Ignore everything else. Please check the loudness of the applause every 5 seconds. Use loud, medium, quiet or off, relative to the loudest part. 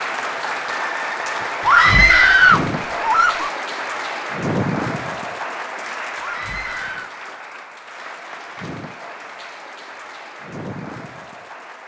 loud, medium, medium.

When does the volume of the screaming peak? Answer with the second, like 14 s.
2 s.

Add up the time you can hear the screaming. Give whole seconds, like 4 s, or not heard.
3 s.